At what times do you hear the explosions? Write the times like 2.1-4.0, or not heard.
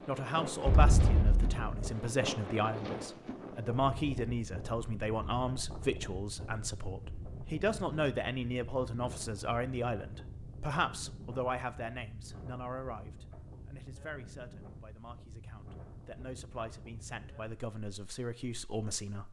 0.7-1.9.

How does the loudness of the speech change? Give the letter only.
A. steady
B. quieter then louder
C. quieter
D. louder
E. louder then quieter
C.